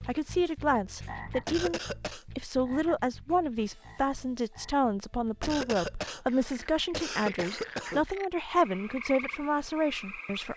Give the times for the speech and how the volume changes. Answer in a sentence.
The speech can be heard from 0.1 to 10.5 s, at a steady volume.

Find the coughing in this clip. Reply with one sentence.
You can hear the coughing from 1.4 to 2.2 s and from 5.4 to 8.1 s.